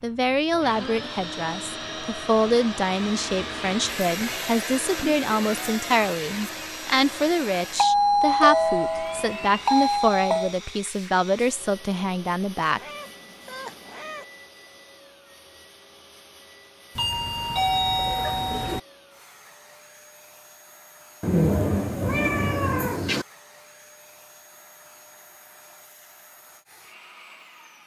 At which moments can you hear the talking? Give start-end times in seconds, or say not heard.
0.0-12.8.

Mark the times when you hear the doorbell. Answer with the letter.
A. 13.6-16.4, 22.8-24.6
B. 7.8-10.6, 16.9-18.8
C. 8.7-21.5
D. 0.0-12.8
B.